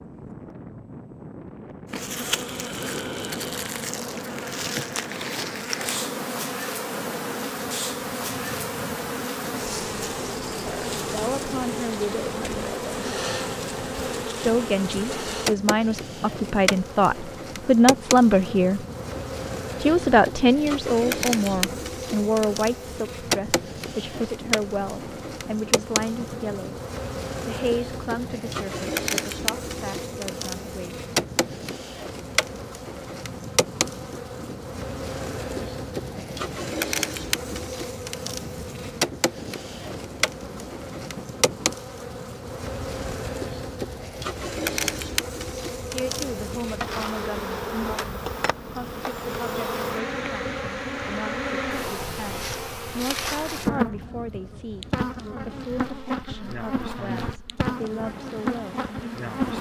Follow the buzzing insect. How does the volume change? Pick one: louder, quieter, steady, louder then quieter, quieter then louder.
steady.